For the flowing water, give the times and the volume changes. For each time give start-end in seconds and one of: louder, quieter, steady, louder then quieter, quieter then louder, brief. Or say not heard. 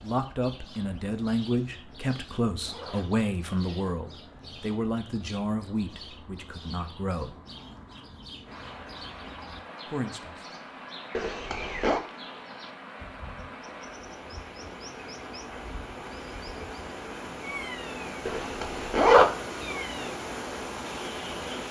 8.4-21.6 louder.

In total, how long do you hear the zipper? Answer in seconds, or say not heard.
3 s.